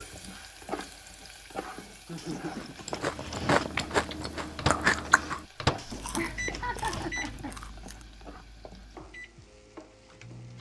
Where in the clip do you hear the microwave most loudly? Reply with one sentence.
The volume of the microwave peaks at 5 seconds.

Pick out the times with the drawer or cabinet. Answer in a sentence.
You can hear the drawer or cabinet from 2.1 to 3.7 s and from 5.8 to 7.2 s.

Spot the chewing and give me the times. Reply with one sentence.
You can hear the chewing from 2.5 to 8.1 s.